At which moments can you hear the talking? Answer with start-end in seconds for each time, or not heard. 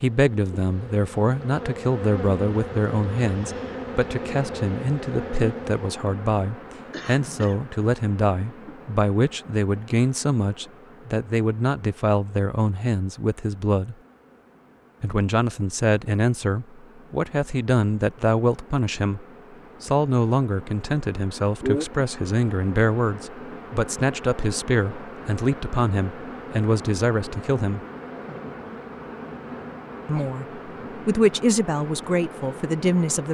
0.0-13.9, 15.0-27.8, 30.1-33.2.